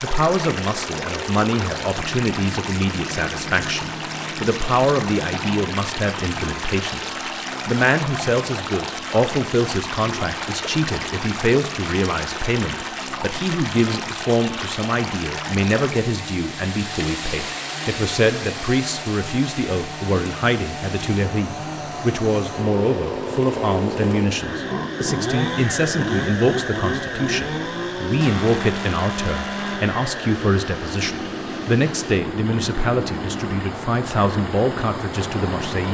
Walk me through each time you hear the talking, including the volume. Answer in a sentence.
You can hear the talking from 0.0 to 35.8 s, at a steady volume.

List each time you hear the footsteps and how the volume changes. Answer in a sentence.
The footsteps can't be heard in this clip.